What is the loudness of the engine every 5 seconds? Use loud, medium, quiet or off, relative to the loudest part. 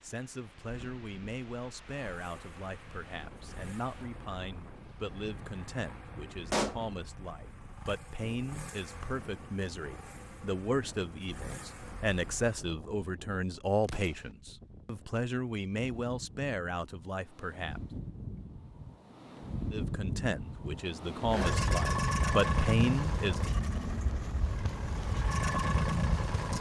quiet, quiet, quiet, off, loud, loud.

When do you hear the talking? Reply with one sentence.
The talking can be heard from 0.0 to 17.8 s and from 19.7 to 23.4 s.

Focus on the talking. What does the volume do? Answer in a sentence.
The loudness of the talking goes up.